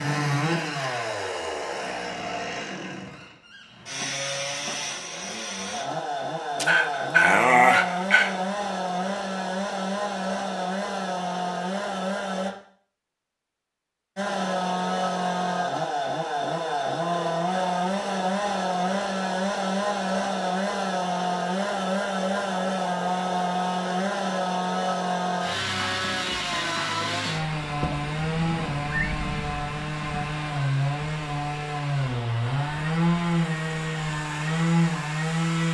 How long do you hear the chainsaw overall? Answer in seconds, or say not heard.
34 s.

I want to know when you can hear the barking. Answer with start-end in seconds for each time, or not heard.
6.5-8.3.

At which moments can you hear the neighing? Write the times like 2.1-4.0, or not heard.
27.6-29.1.